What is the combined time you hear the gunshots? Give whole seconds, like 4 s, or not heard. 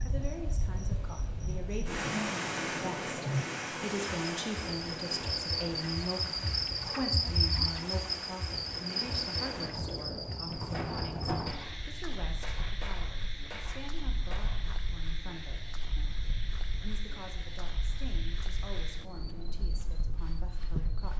3 s.